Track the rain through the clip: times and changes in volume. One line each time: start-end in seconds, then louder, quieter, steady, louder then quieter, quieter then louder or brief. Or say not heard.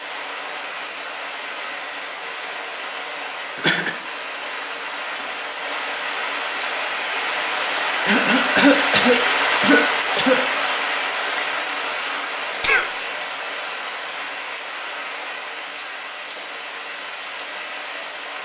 0.0-18.3 louder then quieter.